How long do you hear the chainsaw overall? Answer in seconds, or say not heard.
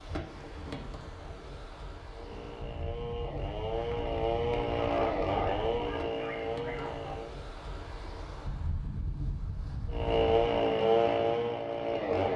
8 s.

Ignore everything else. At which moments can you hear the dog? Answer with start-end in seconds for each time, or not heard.
4.8-7.2.